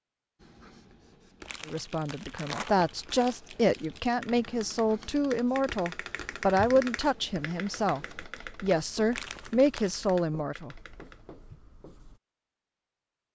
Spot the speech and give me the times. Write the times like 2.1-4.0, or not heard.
1.6-10.8.